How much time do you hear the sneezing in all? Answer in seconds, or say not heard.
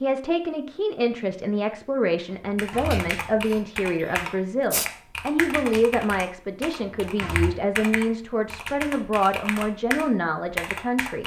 2 s.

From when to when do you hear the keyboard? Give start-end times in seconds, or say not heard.
2.5-11.2.